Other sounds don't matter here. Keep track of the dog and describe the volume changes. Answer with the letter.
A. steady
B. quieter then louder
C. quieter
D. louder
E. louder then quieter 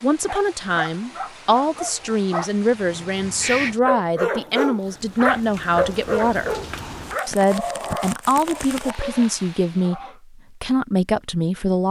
E.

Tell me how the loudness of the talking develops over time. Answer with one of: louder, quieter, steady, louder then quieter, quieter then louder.
steady.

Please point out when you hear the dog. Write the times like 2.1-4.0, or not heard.
0.2-10.2.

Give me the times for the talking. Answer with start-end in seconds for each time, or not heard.
0.0-6.5, 7.2-11.8.